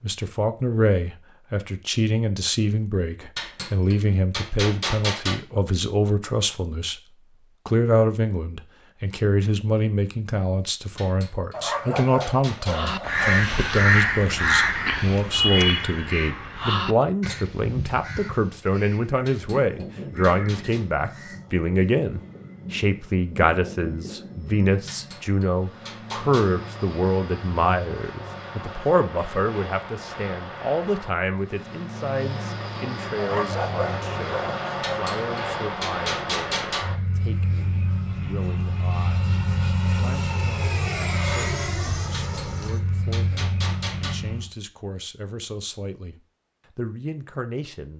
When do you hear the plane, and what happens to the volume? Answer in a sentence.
The plane can be heard from 19.6 to 44.5 s, getting louder.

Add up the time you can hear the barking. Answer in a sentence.
You can hear the barking for 4 seconds altogether.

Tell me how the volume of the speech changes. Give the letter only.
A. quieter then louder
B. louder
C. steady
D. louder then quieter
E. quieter
E.